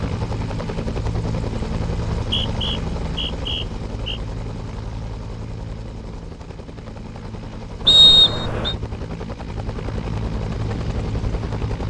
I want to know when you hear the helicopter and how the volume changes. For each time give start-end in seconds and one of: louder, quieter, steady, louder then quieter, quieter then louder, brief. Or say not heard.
0.0-11.8 quieter then louder.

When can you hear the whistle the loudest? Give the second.
8 s.